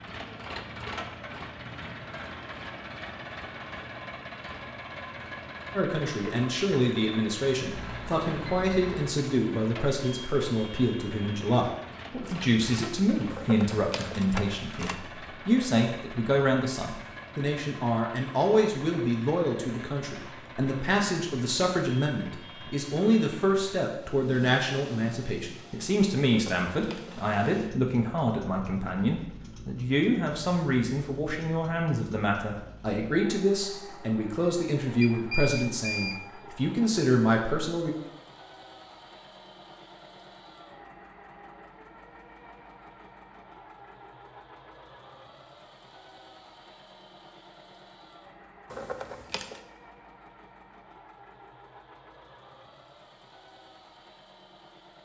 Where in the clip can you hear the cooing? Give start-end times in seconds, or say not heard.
not heard.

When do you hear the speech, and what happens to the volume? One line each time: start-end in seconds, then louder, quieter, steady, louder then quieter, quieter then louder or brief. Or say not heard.
5.8-38.0 steady.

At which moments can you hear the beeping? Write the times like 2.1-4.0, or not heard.
7.7-9.0, 35.0-36.2.